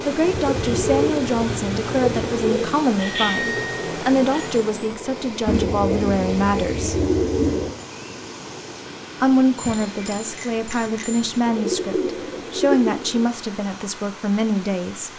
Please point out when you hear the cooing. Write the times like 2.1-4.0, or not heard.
0.3-2.6, 5.5-7.8, 11.4-13.3.